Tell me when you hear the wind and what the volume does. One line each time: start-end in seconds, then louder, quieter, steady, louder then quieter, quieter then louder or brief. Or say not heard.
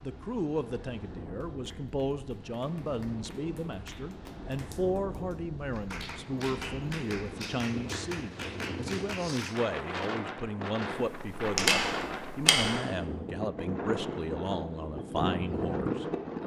0.0-16.4 louder.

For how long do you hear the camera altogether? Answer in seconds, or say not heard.
2 s.